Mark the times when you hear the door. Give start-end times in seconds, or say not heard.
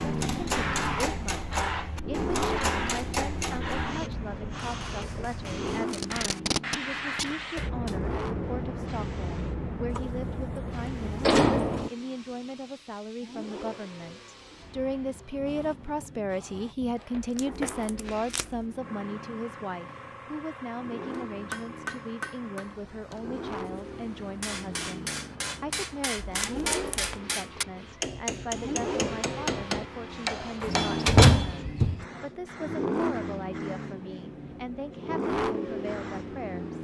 9.9-10.4, 11.2-11.9, 30.6-32.0.